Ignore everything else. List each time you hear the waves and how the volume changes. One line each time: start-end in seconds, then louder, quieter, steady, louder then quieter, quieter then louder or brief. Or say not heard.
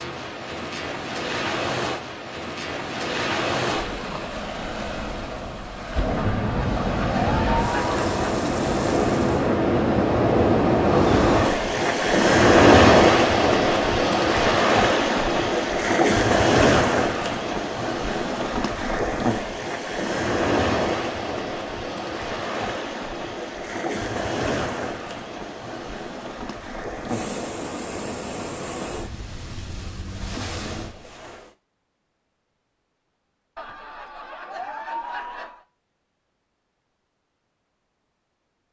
0.0-31.5 louder then quieter.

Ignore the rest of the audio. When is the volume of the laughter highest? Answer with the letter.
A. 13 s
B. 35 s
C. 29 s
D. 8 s
D.